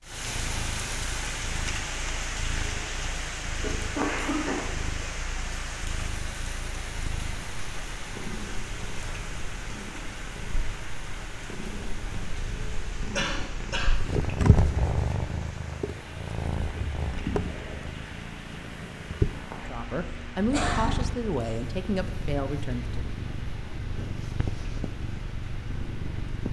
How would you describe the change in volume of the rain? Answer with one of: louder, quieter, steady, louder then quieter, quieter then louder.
quieter.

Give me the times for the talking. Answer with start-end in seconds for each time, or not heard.
19.6-23.1.